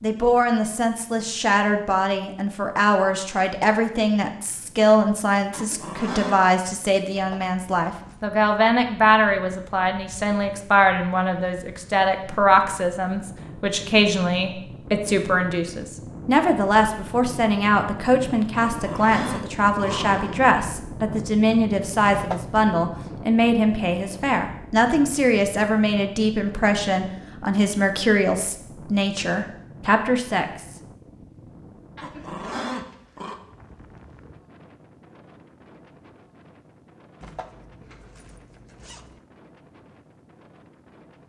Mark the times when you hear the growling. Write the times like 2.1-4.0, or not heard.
5.5-6.5, 18.6-20.4, 31.9-33.4.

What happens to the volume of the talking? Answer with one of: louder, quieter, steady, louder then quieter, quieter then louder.
steady.